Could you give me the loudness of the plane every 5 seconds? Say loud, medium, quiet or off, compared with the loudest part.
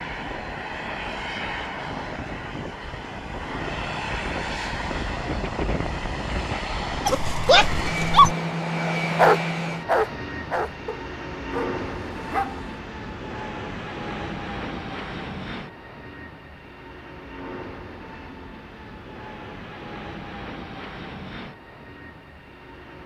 loud, loud, medium, medium, medium.